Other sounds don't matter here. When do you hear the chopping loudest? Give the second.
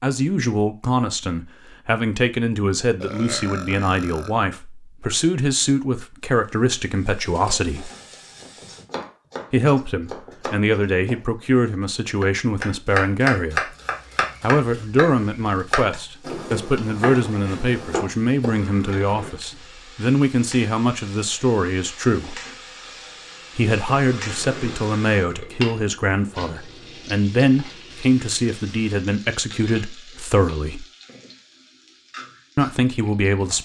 13 s.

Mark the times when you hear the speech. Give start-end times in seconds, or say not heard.
0.0-7.9, 9.5-13.7, 14.4-22.4, 23.6-30.9, 32.5-33.5.